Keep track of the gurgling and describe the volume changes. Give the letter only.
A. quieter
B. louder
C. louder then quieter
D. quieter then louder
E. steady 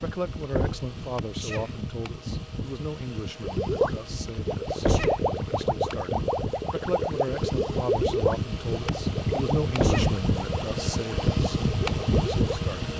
A.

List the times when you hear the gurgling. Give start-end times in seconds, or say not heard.
3.4-12.7.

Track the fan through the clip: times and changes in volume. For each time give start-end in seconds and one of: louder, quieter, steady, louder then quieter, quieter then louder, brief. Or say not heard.
0.0-12.9 louder.